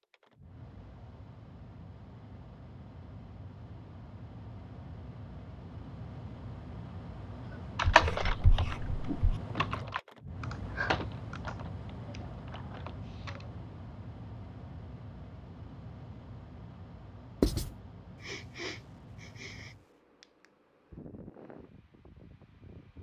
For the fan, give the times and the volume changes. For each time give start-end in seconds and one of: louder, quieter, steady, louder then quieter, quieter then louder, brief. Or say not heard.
0.0-22.9 louder then quieter.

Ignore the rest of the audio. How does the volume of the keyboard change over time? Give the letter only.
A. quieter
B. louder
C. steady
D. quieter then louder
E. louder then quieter
A.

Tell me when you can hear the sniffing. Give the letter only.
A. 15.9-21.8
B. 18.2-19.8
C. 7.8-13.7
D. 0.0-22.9
B.